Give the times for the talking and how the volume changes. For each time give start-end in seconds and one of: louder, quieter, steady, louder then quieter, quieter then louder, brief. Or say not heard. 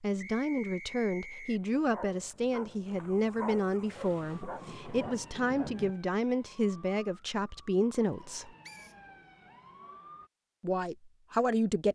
0.0-8.5 steady
10.6-11.8 brief.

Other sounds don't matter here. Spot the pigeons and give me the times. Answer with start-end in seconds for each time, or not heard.
not heard.